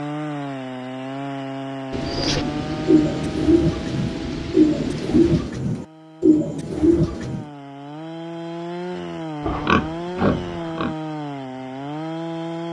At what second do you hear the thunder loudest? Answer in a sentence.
The volume of the thunder peaks at 5 seconds.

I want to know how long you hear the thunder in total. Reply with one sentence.
You can hear the thunder for 4 seconds altogether.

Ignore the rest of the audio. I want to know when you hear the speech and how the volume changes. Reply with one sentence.
You can't hear the speech here.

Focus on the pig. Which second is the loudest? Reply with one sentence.
The loudest moment of the pig is at 10 seconds.